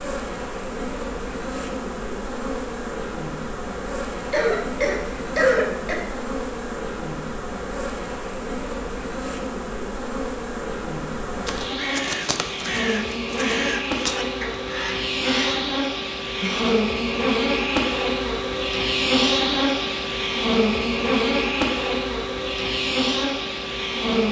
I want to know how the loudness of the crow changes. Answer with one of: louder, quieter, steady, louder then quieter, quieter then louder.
quieter.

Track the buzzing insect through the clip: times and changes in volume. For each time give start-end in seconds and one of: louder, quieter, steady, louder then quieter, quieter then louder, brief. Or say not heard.
0.0-24.2 louder.